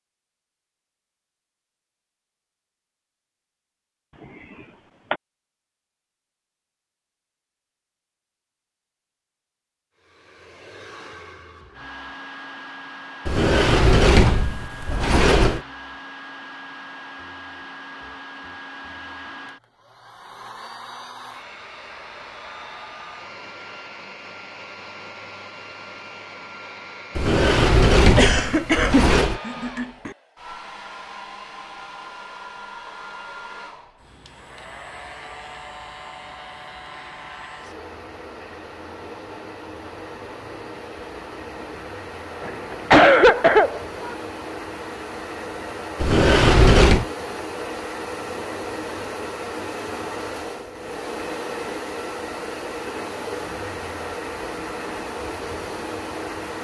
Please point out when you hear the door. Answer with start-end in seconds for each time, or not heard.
13.2-15.6, 27.1-29.4, 46.0-47.0.